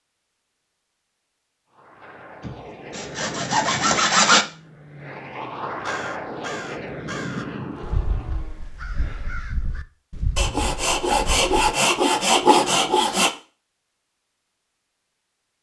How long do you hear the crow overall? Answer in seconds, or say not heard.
6 s.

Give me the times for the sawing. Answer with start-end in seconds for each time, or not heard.
2.4-4.5, 10.3-13.3.